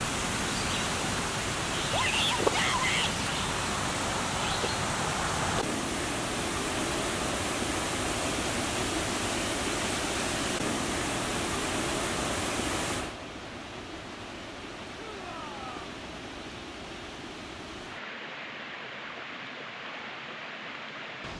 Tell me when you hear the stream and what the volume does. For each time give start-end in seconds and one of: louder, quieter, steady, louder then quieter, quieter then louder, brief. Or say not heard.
0.0-21.3 quieter.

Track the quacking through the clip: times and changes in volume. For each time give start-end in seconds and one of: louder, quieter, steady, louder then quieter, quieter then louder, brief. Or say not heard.
not heard.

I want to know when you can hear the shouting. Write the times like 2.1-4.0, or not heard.
1.9-3.1, 14.9-15.8.